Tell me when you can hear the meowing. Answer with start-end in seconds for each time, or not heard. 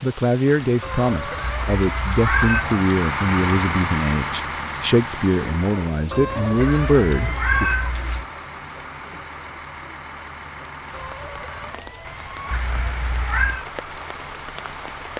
1.4-2.6, 6.5-8.2, 12.5-13.7.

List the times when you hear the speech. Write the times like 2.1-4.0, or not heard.
0.0-7.7.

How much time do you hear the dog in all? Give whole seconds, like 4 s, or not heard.
not heard.